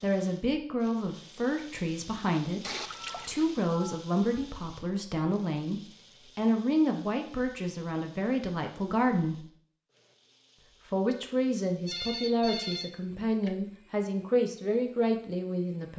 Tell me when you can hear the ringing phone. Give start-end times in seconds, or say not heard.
2.9-4.4, 11.8-13.6.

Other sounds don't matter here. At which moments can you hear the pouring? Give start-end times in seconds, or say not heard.
2.6-3.6.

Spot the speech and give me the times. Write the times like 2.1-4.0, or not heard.
0.0-9.4, 10.9-15.9.